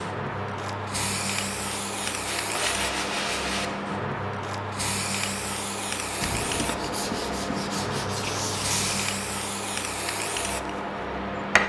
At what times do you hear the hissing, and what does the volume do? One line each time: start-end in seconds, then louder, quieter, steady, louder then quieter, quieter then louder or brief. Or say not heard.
0.0-11.6 steady.